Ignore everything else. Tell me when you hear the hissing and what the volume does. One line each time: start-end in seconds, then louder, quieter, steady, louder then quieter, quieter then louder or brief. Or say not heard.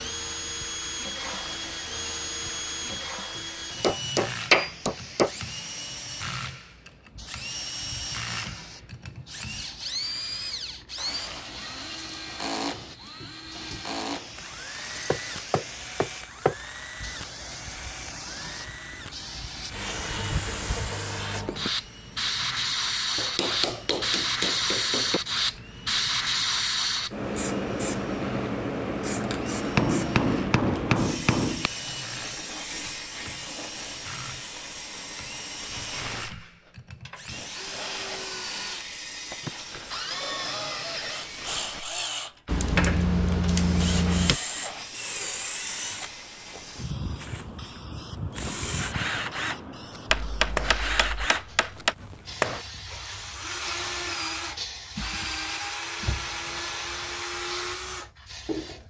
0.0-58.8 louder then quieter.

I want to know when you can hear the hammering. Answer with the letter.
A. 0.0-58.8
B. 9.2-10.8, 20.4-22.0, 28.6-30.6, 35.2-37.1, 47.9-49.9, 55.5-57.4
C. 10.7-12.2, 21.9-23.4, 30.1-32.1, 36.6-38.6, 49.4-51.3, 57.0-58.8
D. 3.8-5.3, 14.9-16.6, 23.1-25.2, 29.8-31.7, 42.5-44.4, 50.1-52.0
D.